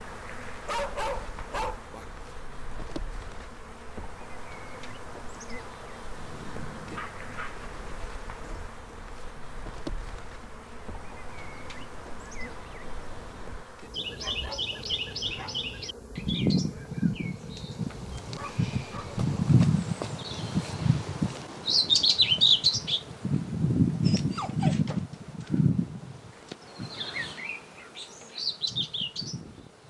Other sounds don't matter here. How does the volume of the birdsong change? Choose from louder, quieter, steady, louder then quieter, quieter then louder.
louder then quieter.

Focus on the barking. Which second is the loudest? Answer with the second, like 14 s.
1 s.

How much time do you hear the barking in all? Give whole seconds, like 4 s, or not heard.
7 s.